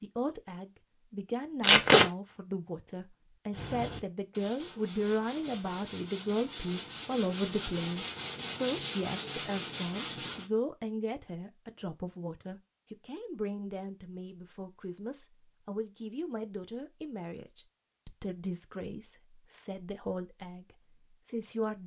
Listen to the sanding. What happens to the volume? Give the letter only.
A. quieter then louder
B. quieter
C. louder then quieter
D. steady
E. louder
E.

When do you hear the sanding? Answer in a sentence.
You can hear the sanding from 3.5 to 10.5 s.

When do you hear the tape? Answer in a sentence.
You can hear the tape from 1.6 to 2.0 s.